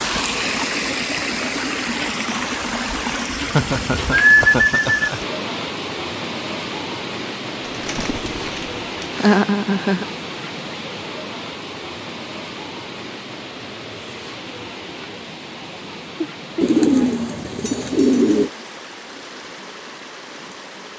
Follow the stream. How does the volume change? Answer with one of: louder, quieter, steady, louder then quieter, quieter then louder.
quieter.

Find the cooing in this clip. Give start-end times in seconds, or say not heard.
3.4-5.1, 7.7-9.1, 16.6-18.5.